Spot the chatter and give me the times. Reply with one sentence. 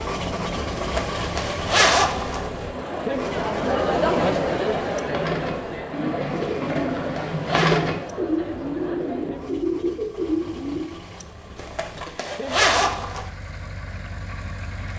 The chatter can be heard from 0.0 to 9.7 s.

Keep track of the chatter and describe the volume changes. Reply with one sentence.
The volume of the chatter goes up, then down.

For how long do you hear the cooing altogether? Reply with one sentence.
You can hear the cooing for 6 seconds altogether.